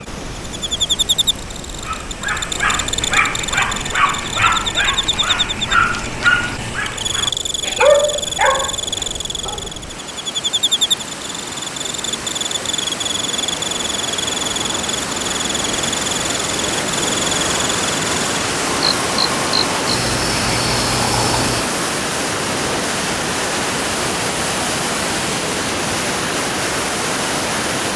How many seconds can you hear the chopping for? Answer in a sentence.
You can't hear the chopping here.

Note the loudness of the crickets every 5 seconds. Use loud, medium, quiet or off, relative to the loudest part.
loud, loud, loud, loud, loud, off.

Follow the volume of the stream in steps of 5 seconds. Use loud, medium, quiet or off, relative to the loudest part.
quiet, quiet, medium, loud, loud, loud.